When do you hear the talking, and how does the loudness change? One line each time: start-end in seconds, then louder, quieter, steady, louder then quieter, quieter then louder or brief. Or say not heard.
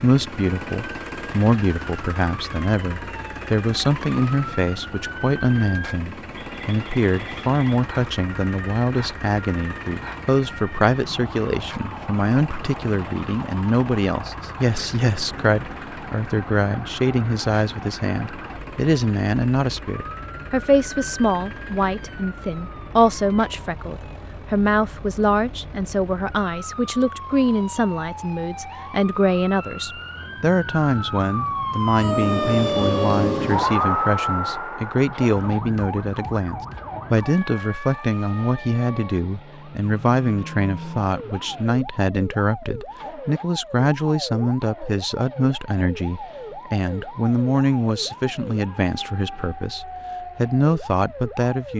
0.0-51.7 steady.